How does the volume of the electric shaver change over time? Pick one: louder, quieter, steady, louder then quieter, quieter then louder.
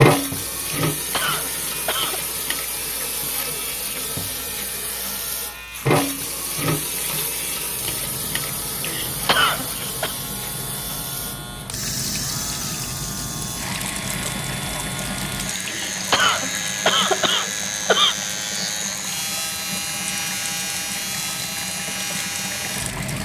louder.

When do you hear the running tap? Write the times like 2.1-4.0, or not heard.
0.0-23.1.